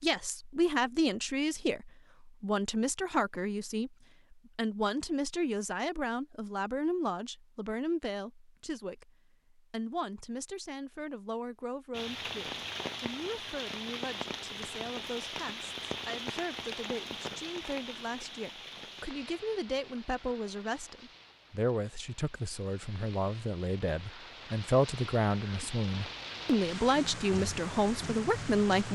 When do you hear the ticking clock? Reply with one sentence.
The ticking clock can't be heard in this clip.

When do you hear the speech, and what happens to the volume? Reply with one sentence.
You can hear the speech from 0.0 to 28.9 s, getting quieter then louder.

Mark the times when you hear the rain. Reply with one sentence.
You can hear the rain from 11.9 to 28.9 s.